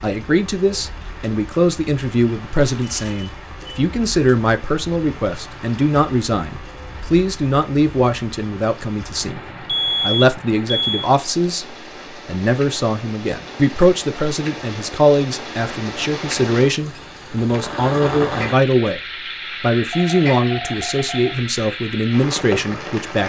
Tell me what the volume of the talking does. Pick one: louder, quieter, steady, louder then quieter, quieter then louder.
steady.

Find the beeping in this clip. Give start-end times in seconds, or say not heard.
2.6-3.8, 9.7-11.1, 19.9-21.4.